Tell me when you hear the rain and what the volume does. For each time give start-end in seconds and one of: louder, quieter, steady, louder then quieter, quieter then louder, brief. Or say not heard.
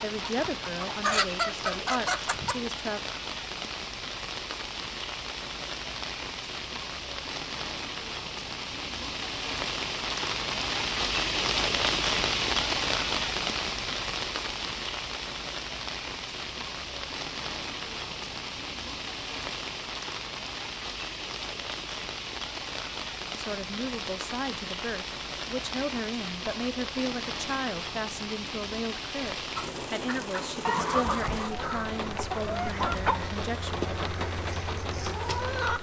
0.0-35.7 louder then quieter.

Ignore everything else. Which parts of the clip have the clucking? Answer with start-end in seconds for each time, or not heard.
0.0-2.6, 29.6-35.7.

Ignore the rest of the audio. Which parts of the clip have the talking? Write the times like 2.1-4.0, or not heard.
0.0-3.0, 23.4-33.8.